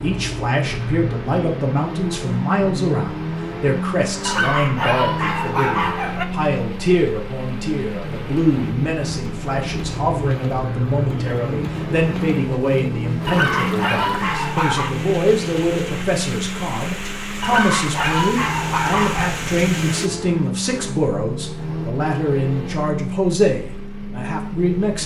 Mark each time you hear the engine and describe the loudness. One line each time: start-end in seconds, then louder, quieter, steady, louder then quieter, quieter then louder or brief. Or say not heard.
0.0-25.0 steady.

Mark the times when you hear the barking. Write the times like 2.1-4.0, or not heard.
4.2-6.2, 13.2-14.9, 17.4-19.4.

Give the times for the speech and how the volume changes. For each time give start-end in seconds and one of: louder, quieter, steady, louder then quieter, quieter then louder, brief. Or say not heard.
0.0-25.0 steady.